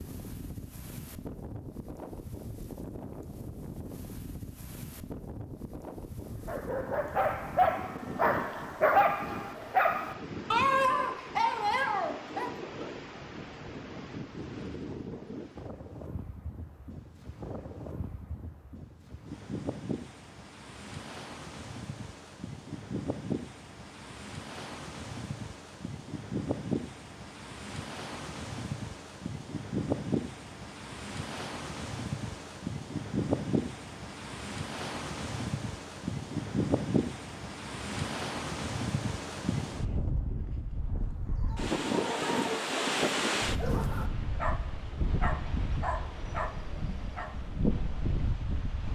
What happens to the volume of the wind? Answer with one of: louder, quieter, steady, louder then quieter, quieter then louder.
louder.